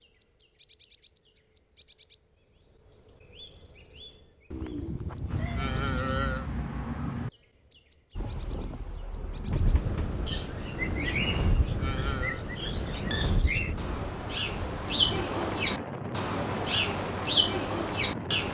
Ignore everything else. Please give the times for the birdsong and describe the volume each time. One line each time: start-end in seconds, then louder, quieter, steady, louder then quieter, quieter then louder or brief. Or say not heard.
0.0-18.4 louder.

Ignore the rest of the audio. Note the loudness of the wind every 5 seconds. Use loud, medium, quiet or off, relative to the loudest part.
off, loud, loud, loud.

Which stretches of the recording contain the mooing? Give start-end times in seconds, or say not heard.
4.5-6.5, 10.7-12.4.